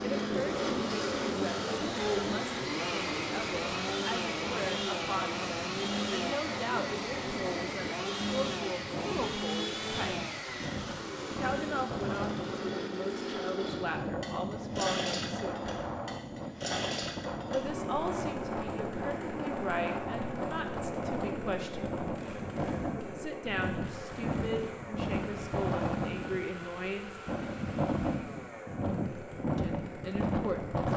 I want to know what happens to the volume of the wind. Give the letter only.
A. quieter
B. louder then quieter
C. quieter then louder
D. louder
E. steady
D.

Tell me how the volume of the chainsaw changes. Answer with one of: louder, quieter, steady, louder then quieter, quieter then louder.
quieter.